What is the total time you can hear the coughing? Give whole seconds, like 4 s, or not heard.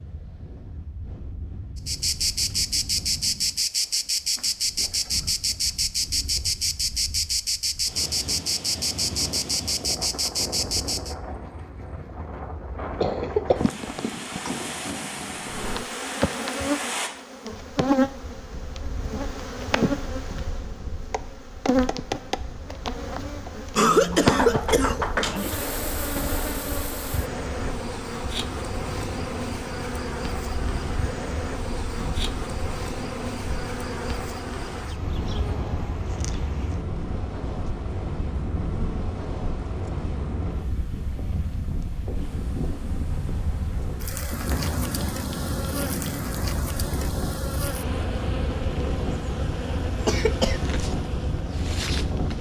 4 s.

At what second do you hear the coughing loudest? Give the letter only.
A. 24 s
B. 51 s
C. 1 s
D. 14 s
A.